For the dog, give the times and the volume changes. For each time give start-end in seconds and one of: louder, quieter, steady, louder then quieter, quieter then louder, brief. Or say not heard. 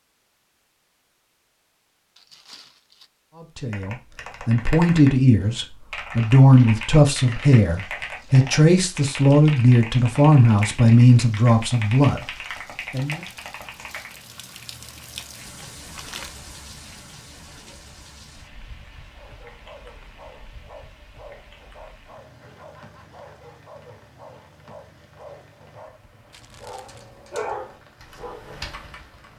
19.1-28.6 louder.